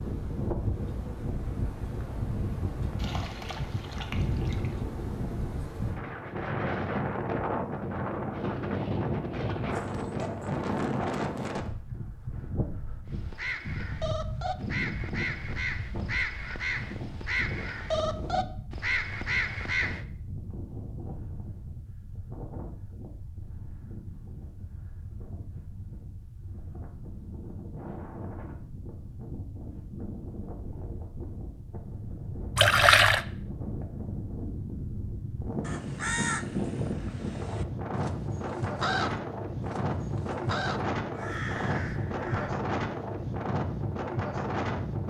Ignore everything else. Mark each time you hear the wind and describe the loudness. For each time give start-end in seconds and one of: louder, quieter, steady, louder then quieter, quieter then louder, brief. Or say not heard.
0.0-45.0 quieter then louder.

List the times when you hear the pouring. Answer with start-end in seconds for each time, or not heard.
3.0-4.8, 32.5-33.2.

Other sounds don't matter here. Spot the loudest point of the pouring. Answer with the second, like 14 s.
33 s.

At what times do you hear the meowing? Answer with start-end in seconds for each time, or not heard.
not heard.